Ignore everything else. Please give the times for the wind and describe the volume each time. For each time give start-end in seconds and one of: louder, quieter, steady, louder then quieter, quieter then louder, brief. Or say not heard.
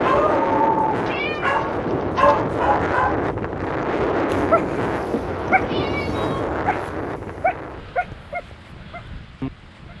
0.0-9.9 quieter.